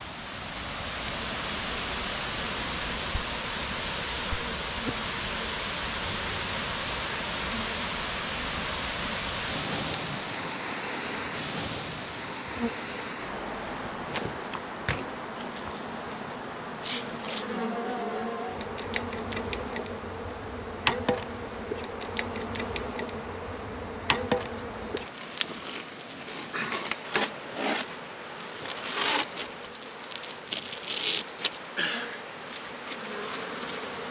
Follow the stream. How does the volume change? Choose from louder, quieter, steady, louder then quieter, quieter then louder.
quieter.